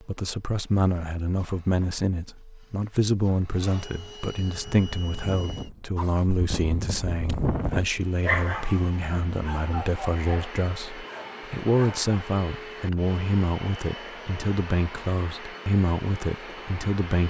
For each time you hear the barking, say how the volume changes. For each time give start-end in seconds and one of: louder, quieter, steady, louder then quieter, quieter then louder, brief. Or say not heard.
4.4-12.2 louder then quieter.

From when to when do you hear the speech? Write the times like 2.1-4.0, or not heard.
0.0-17.2.